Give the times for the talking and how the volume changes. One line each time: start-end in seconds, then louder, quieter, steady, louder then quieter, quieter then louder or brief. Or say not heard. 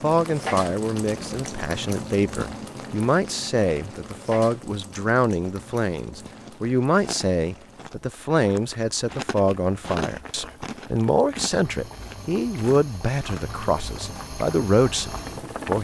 0.0-15.7 steady.